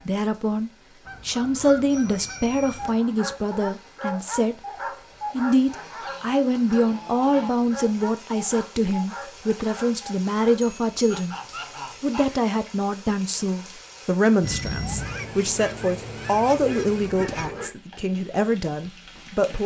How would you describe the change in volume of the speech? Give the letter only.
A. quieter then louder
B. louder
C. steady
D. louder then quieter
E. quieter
C.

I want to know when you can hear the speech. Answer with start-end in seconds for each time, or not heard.
0.1-4.6, 5.3-11.3, 12.0-19.6.